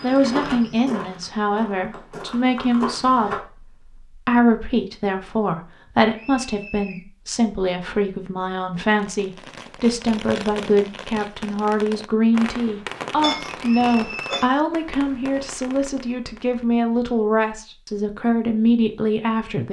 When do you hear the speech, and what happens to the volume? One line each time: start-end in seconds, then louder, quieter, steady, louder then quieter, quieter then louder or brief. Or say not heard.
0.0-19.6 steady.